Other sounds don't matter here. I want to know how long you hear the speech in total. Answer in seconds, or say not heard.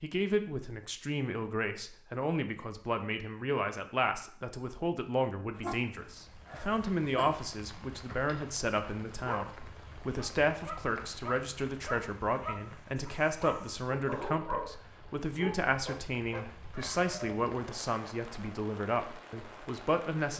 20 s.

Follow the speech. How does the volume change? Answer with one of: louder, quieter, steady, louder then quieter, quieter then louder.
steady.